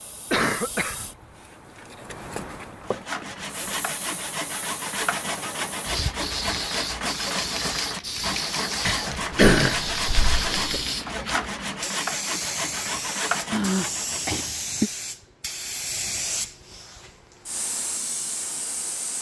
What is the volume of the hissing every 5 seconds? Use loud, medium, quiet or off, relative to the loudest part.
medium, loud, loud, loud.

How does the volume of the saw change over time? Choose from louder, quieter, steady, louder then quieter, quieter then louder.
steady.